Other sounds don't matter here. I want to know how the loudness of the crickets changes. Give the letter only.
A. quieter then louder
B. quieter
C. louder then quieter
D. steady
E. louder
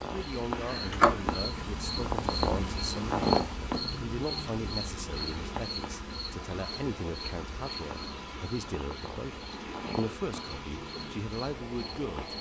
B.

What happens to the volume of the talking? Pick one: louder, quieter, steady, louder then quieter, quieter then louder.
steady.